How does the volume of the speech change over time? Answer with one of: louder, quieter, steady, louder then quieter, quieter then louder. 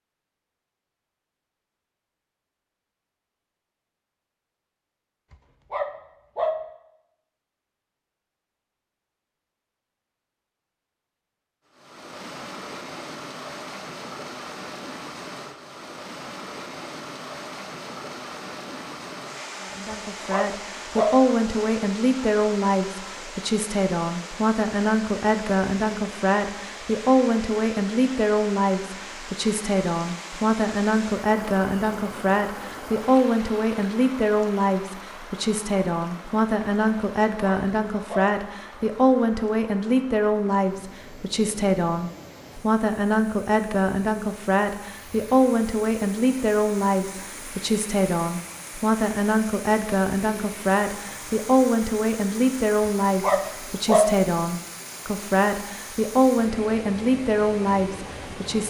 steady.